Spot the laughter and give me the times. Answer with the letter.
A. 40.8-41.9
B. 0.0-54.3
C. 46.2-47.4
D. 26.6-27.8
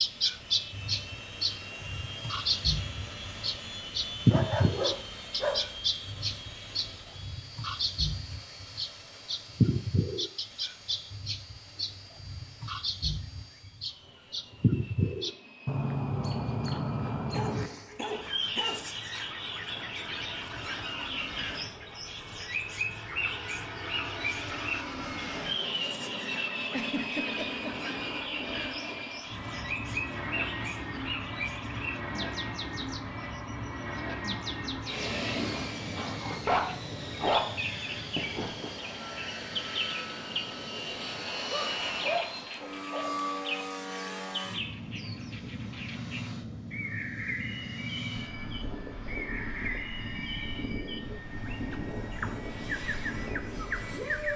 D.